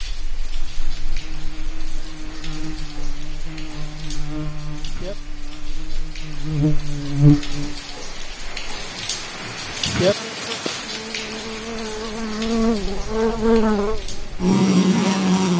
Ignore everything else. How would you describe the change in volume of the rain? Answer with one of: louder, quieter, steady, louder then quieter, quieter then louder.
louder then quieter.